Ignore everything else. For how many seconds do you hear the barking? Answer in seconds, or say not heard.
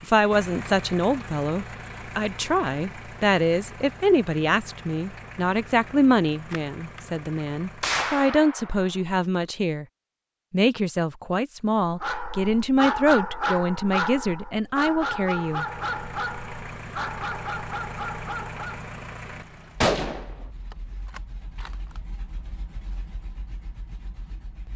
7 s.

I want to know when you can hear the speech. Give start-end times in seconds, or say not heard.
0.0-9.8, 10.5-15.7.